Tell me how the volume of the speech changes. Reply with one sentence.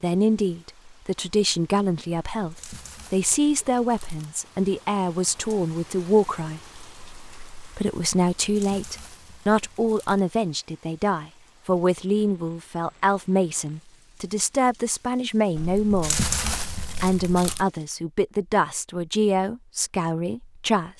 The loudness of the speech stays about the same.